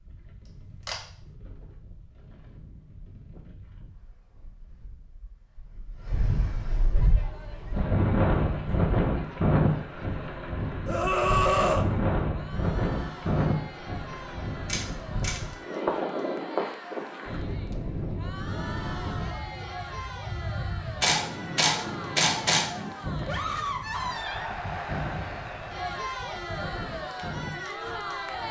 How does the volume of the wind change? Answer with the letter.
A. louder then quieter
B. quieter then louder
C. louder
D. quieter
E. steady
A.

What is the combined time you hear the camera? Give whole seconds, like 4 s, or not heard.
3 s.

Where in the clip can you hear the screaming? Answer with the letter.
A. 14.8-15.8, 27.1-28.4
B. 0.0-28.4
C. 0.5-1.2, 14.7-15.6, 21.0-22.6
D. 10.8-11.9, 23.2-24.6
D.